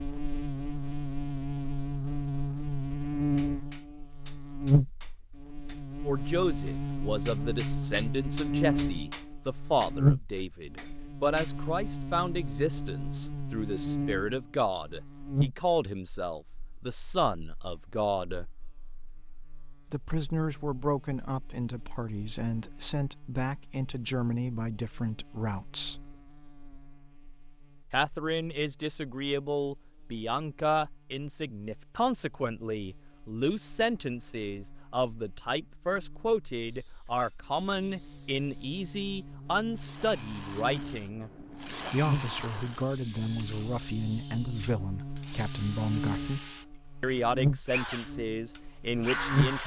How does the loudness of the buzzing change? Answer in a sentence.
The volume of the buzzing goes down, then up.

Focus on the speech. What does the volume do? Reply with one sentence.
The volume of the speech stays about the same.